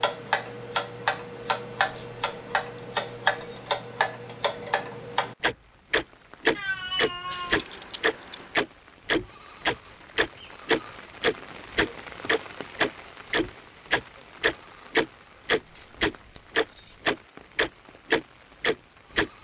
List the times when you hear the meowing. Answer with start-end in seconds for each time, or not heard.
6.5-7.7.